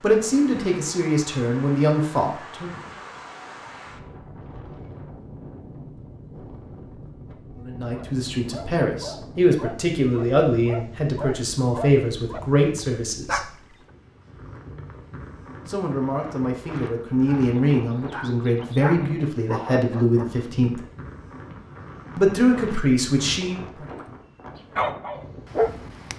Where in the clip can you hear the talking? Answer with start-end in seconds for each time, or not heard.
0.0-2.8, 7.6-13.5, 15.7-20.9, 22.1-23.9.